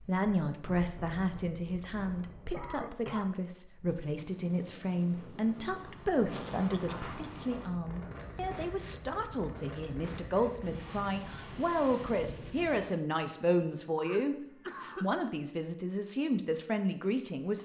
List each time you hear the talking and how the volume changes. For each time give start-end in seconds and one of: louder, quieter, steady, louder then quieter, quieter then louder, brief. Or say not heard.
0.1-17.6 steady.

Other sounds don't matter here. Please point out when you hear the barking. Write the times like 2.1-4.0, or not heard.
not heard.